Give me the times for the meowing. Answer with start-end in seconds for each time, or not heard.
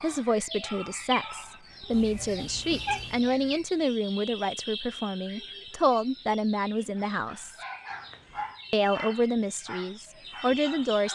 1.9-3.3, 7.9-8.6.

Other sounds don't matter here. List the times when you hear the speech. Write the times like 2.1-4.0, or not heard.
0.0-7.6, 8.7-11.1.